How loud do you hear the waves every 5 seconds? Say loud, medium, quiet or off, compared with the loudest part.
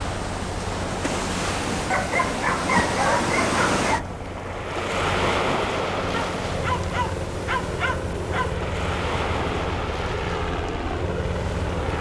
loud, loud, medium.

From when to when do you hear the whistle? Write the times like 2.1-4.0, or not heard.
not heard.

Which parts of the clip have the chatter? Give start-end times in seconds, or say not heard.
not heard.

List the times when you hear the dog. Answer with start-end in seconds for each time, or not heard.
1.9-4.0, 6.1-8.6.